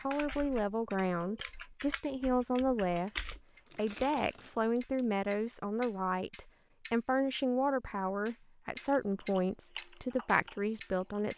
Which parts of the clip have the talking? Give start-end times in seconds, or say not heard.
0.0-11.3.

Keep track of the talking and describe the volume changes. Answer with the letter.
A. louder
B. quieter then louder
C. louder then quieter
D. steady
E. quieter
D.